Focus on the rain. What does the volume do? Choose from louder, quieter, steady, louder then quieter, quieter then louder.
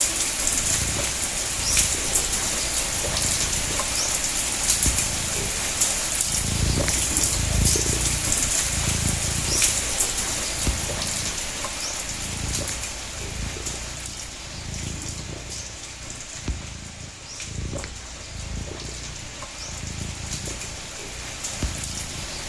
quieter.